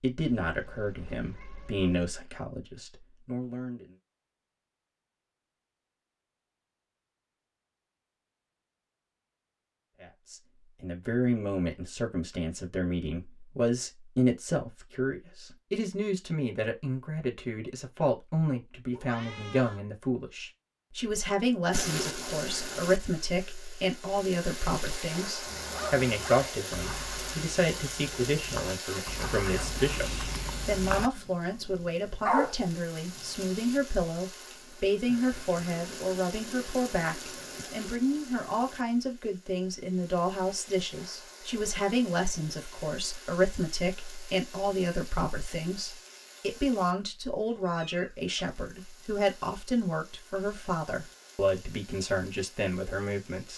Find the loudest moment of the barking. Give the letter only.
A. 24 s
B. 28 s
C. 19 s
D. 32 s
D.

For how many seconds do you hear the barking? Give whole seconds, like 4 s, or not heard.
8 s.